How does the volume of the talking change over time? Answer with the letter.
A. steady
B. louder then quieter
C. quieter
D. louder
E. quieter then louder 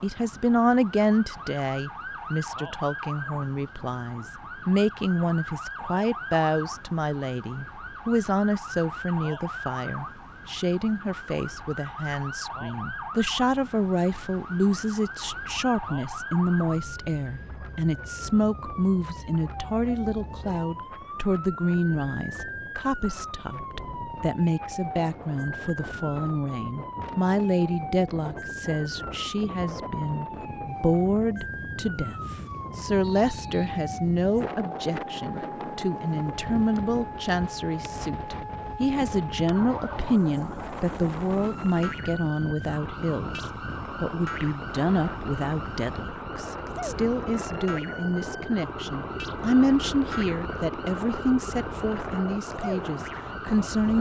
A.